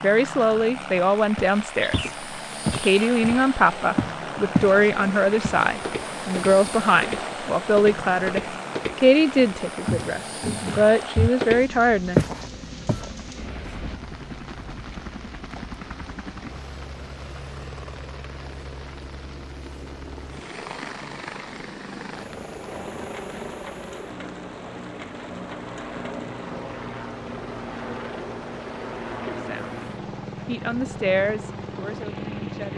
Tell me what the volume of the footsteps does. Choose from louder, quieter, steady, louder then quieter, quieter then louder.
louder.